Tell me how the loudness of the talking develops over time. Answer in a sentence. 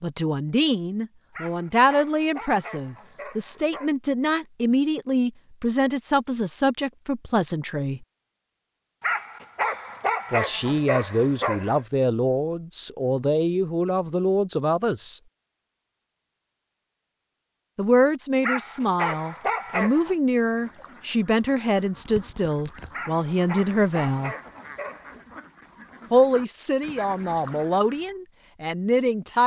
The loudness of the talking stays about the same.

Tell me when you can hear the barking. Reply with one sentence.
The barking can be heard from 1.3 to 3.9 s, from 9.0 to 11.8 s, from 18.4 to 20.1 s and from 22.9 to 25.4 s.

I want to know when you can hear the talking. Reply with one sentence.
You can hear the talking from 0.0 to 8.1 s, from 10.3 to 15.2 s, from 17.8 to 24.4 s and from 26.1 to 29.4 s.